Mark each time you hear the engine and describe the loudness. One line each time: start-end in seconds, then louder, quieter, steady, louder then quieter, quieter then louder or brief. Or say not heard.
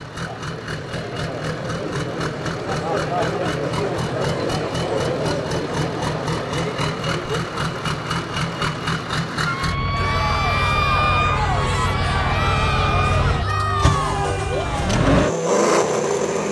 0.0-16.4 louder.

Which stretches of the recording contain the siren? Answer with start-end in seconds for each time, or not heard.
9.4-14.7.